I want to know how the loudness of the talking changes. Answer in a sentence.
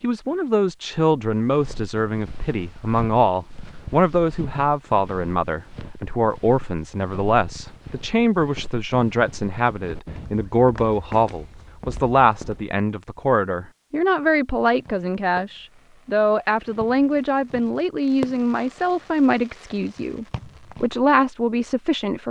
The volume of the talking stays about the same.